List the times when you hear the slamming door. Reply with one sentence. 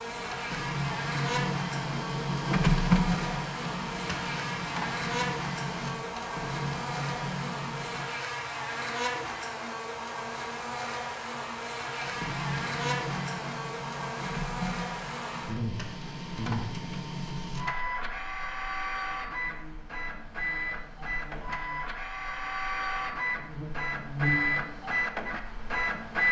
You can't hear the slamming door here.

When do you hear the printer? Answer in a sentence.
The printer can be heard from 0.0 to 8.1 s and from 11.9 to 26.2 s.